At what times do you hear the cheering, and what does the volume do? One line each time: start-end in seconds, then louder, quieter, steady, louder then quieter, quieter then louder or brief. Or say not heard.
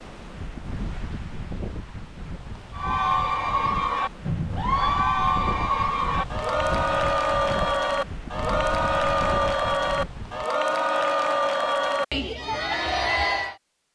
2.7-13.6 steady.